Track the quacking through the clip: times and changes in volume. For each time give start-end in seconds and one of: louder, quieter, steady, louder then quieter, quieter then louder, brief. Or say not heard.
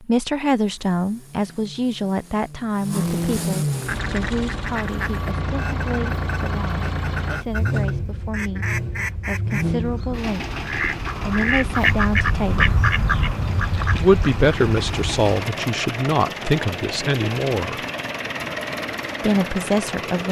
3.8-15.2 louder.